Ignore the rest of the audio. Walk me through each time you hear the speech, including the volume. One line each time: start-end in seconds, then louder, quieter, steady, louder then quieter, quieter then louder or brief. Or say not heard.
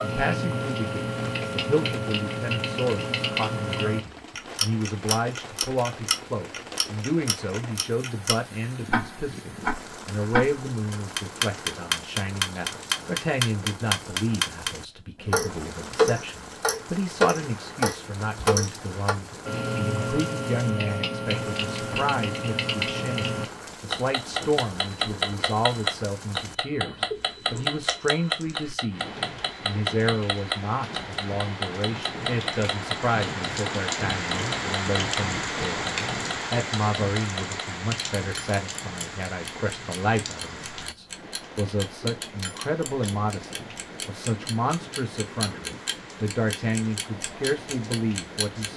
0.0-48.7 steady.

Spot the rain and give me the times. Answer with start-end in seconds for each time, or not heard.
0.0-48.7.